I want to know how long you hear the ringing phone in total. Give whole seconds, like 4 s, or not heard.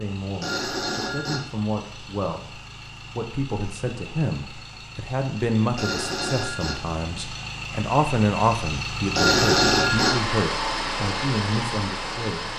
3 s.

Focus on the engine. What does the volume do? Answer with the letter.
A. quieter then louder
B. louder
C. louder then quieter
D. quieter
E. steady
B.